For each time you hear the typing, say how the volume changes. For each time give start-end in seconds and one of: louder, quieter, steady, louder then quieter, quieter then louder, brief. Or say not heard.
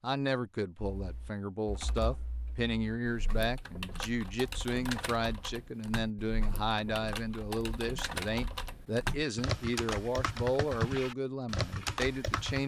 0.8-12.6 louder.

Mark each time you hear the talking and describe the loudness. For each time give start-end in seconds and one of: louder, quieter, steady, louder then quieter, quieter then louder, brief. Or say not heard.
0.0-12.6 steady.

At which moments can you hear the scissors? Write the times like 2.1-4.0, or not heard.
not heard.